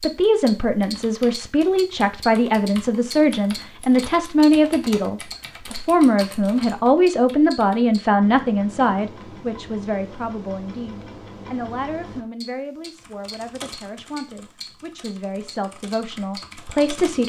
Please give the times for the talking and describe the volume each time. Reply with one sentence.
You can hear the talking from 0.0 to 17.2 s, getting quieter.